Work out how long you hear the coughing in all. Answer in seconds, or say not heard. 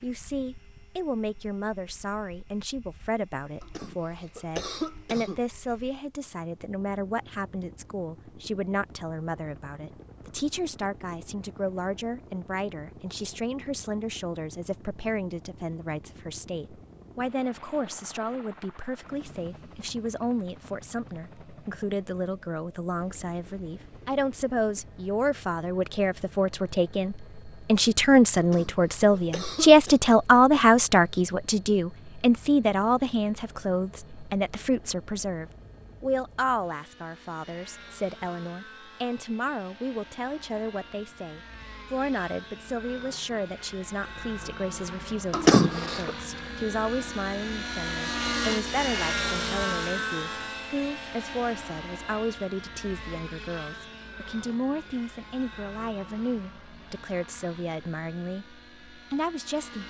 4 s.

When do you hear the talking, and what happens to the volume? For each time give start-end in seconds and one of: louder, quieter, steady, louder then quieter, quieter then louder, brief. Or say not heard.
0.0-59.8 louder then quieter.